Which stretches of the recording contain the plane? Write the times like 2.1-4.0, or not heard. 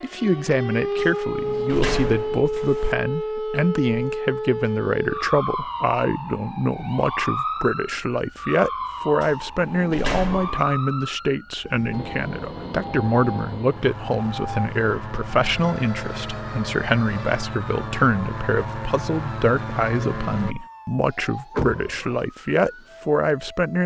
11.9-20.6.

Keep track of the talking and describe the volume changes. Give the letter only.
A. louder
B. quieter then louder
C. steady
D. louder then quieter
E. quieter
C.